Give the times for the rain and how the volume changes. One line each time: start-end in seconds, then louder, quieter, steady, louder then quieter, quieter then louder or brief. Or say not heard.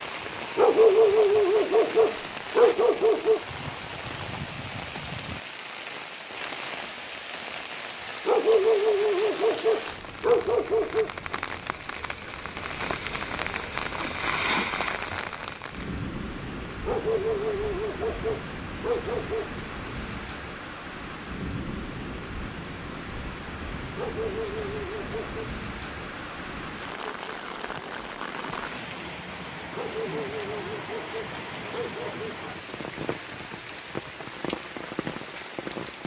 0.0-36.0 steady.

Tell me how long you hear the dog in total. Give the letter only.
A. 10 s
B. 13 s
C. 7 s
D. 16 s
B.